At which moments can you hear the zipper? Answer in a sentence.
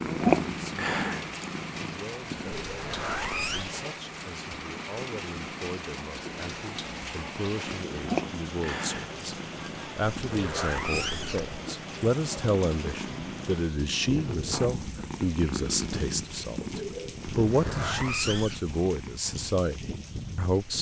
You can hear the zipper from 2.5 to 3.8 s, from 10.2 to 11.6 s and from 17.4 to 18.6 s.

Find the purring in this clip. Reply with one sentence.
The purring can be heard from 0.0 to 19.5 s.